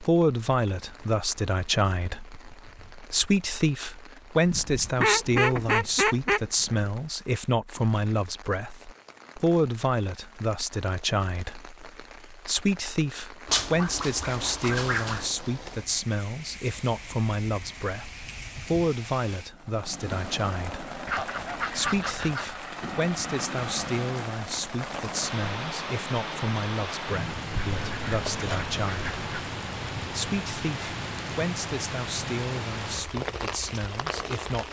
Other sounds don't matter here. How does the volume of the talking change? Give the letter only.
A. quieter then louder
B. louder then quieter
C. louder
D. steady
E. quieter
E.